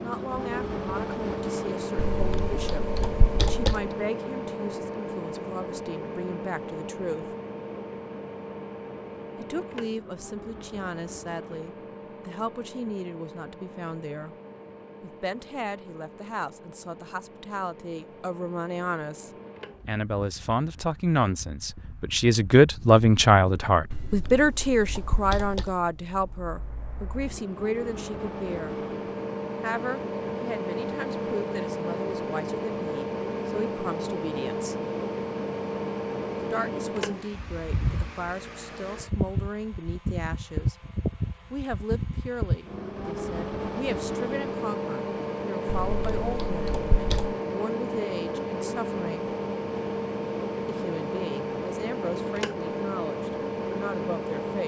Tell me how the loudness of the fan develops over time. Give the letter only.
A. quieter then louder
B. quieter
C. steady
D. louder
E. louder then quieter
A.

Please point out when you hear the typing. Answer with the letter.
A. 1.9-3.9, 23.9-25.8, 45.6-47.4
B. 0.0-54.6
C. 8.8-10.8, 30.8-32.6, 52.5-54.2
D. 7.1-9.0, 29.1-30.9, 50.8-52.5
A.